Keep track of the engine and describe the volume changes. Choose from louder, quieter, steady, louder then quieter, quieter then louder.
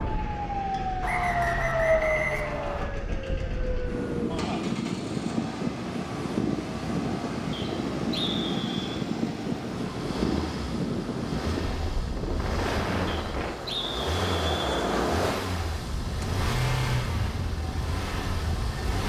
louder.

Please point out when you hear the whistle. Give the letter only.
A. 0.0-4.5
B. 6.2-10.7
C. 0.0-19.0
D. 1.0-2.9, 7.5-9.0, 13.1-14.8
D.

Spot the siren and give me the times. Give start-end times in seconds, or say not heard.
0.0-4.5.